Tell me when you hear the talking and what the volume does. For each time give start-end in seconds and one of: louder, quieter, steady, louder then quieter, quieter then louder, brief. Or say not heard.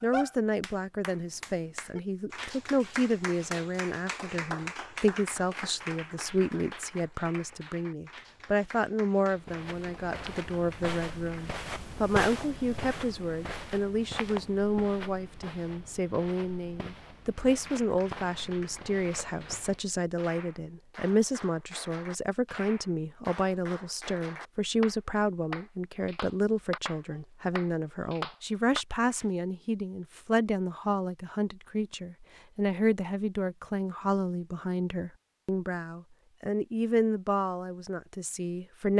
0.0-38.9 steady.